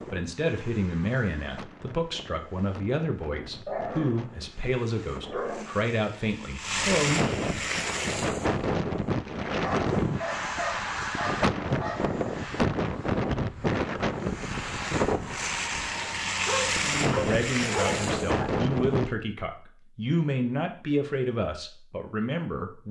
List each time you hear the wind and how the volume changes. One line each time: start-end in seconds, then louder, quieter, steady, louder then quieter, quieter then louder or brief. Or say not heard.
0.0-19.1 louder.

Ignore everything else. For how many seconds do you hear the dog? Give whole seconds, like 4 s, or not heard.
7 s.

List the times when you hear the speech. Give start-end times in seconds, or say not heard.
0.0-7.3, 16.8-22.8.